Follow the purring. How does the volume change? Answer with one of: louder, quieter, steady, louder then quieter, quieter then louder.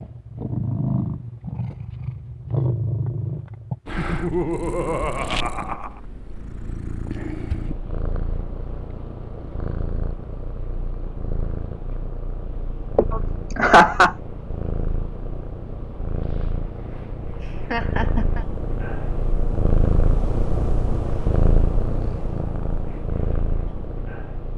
quieter then louder.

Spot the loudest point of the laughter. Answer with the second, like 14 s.
14 s.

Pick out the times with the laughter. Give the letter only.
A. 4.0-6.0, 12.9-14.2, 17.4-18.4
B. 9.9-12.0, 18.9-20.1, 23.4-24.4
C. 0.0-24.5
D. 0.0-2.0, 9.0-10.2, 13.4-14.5
A.